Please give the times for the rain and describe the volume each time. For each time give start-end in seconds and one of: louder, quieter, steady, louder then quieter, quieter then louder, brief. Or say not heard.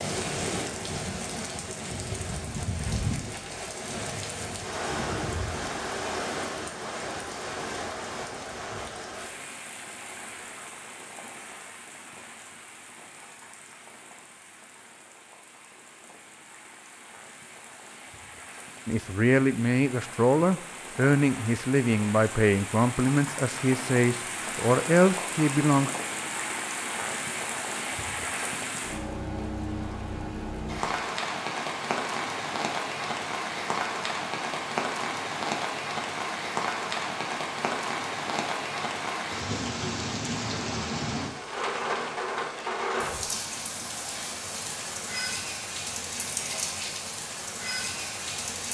0.0-48.7 quieter then louder.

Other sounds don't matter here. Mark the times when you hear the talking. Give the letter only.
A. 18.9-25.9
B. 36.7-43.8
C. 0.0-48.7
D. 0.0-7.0
A.